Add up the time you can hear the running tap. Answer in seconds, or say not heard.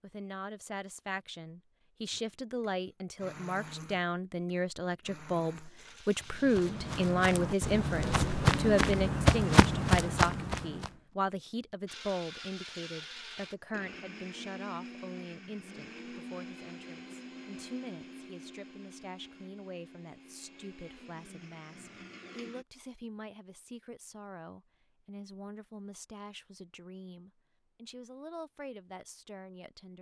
not heard.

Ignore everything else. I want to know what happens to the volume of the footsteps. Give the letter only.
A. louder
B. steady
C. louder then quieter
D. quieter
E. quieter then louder
A.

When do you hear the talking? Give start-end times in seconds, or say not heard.
0.0-29.9.